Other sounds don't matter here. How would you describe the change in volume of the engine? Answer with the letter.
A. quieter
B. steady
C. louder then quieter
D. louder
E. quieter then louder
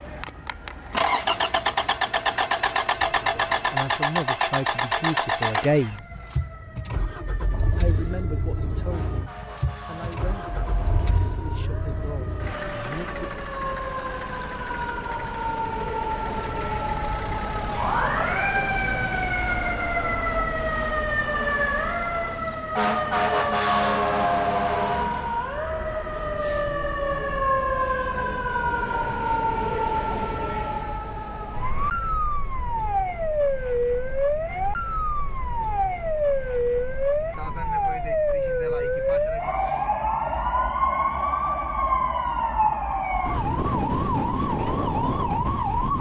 A.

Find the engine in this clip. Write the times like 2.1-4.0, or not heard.
0.0-25.7.